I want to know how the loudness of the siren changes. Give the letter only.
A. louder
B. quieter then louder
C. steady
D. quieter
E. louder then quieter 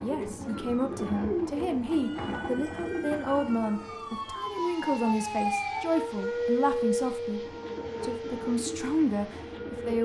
E.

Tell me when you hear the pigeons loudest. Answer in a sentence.
The loudest moment of the pigeons is at 1 second.